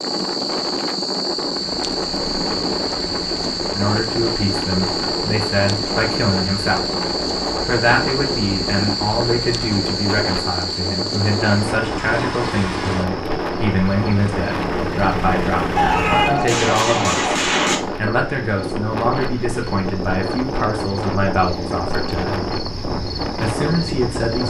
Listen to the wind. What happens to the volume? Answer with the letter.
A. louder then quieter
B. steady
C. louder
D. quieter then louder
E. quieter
B.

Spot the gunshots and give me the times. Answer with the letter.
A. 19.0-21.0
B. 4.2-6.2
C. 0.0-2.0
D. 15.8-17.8
D.